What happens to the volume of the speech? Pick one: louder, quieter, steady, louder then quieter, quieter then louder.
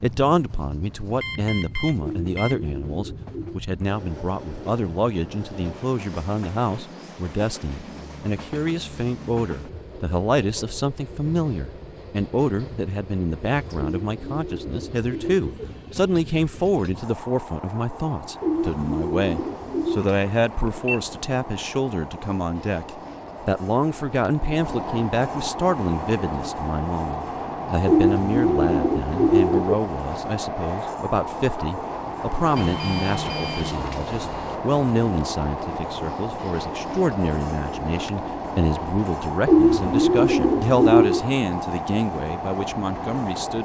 steady.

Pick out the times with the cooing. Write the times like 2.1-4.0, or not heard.
2.0-3.6, 13.8-15.7, 18.4-20.1, 27.9-29.8, 39.5-41.2.